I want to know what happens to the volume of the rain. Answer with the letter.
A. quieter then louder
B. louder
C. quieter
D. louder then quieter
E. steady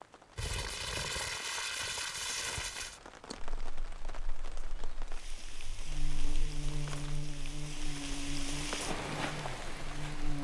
B.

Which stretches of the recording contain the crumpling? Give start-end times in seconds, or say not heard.
0.3-3.0, 5.8-7.2.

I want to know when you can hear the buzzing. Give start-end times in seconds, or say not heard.
3.5-10.3.